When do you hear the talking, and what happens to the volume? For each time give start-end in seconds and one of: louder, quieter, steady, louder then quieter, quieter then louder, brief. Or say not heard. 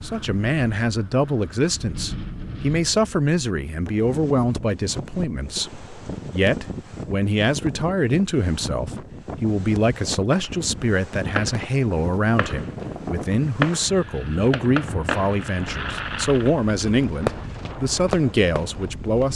0.0-19.3 steady.